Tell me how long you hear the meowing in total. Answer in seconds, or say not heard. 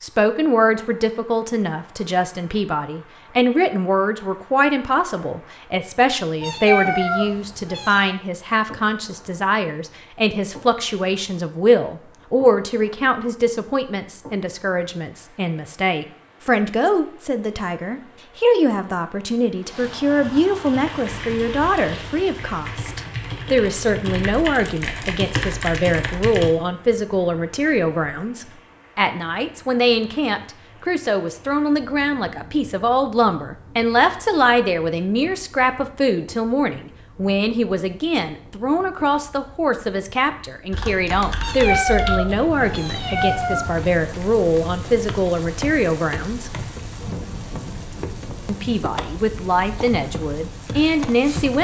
4 s.